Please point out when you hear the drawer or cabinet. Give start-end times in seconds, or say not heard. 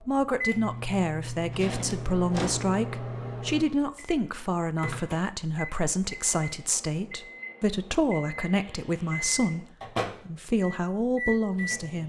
1.5-2.8.